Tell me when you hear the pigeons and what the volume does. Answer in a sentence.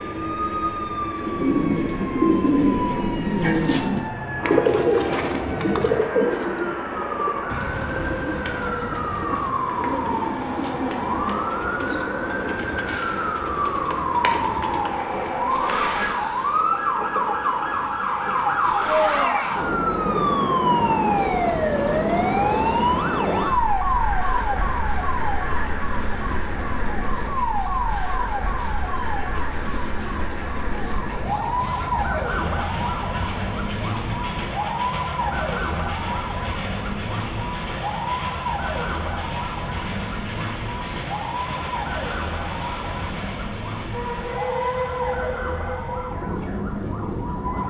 The pigeons can be heard from 1.1 to 12.8 s, getting quieter.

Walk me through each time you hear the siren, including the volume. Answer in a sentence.
The siren can be heard from 0.0 to 47.6 s, getting louder then quieter.